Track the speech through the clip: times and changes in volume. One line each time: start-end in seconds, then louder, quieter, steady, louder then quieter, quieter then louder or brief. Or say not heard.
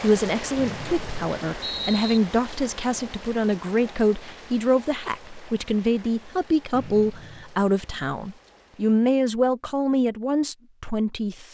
0.0-11.4 steady.